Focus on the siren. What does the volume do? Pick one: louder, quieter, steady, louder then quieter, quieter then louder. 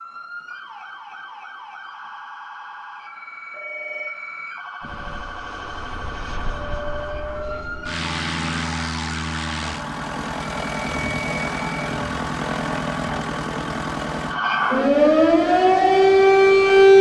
louder.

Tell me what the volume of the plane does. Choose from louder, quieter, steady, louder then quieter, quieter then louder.
louder then quieter.